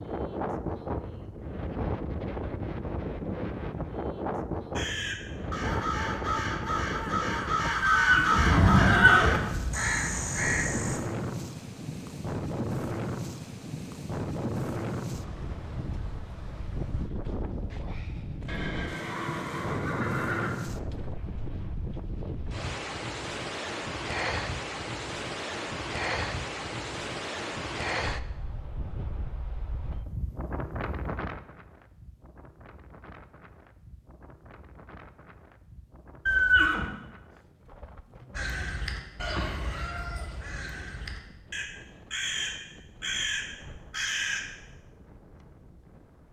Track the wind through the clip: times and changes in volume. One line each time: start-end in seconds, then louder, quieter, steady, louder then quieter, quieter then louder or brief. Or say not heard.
0.0-46.2 quieter.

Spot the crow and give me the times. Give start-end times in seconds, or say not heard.
4.8-11.0, 38.3-44.5.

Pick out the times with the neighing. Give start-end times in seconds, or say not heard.
7.8-9.8, 18.4-20.5, 36.2-36.9.